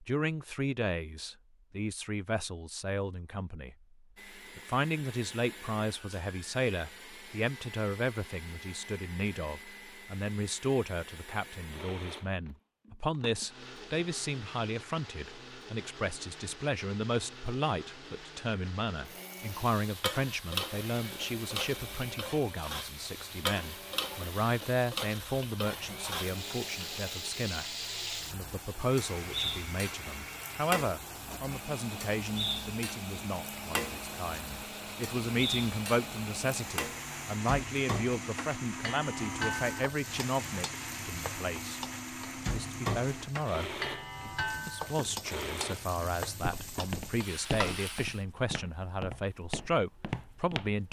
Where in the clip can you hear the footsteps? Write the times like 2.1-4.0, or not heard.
46.4-50.8.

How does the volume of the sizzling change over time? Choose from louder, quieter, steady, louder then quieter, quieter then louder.
steady.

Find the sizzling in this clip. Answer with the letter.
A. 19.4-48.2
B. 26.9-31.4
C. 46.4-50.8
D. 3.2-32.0
A.